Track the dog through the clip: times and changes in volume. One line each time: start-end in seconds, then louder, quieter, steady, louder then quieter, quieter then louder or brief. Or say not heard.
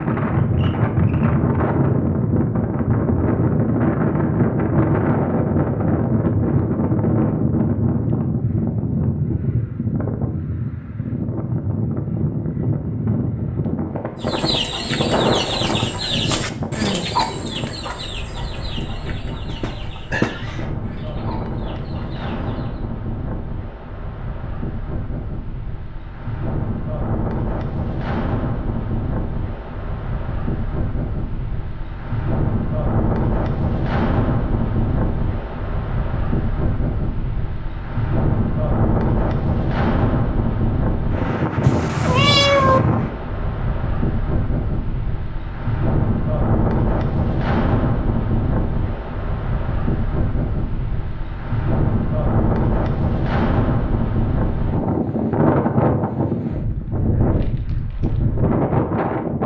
not heard.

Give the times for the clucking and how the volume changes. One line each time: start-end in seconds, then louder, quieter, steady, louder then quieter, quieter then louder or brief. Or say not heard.
14.2-22.9 quieter.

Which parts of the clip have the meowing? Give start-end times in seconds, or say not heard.
19.4-20.6, 41.6-42.8.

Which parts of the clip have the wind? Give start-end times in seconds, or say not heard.
0.0-59.4.